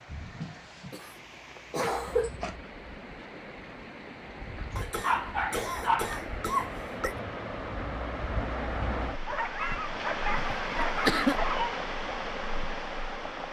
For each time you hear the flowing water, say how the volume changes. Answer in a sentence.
The flowing water can be heard from 0.0 to 13.4 s, getting louder.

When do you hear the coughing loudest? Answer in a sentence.
The loudest moment of the coughing is at 11 seconds.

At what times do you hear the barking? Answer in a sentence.
The barking can be heard from 0.1 to 0.9 s, from 1.8 to 2.5 s, from 4.5 to 6.2 s and from 9.2 to 11.8 s.